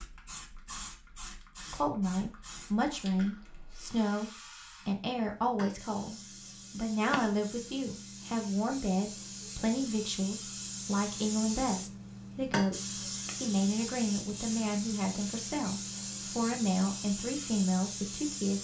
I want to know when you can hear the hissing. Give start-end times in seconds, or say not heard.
0.0-18.5.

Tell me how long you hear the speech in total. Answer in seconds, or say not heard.
17 s.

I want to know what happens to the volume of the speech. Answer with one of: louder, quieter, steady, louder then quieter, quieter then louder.
steady.